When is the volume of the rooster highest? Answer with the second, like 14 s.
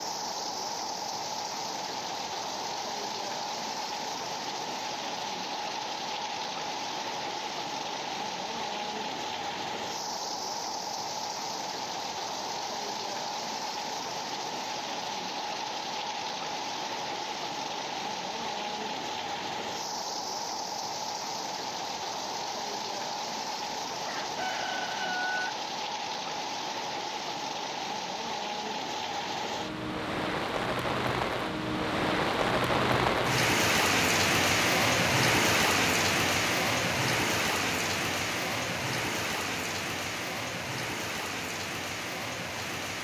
25 s.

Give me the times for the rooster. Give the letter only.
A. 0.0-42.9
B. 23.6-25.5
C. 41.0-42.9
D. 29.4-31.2
B.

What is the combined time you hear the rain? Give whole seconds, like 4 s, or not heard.
43 s.